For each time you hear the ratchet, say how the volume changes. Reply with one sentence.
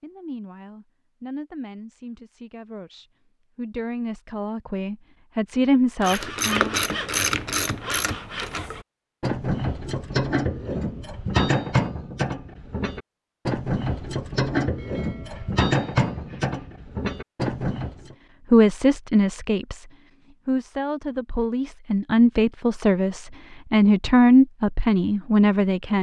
The ratchet can be heard from 6.0 to 18.1 s, at a steady volume.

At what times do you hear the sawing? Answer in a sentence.
The sawing can be heard from 6.0 to 8.8 s and from 14.8 to 16.8 s.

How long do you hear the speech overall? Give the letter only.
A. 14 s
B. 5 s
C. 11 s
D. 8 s
A.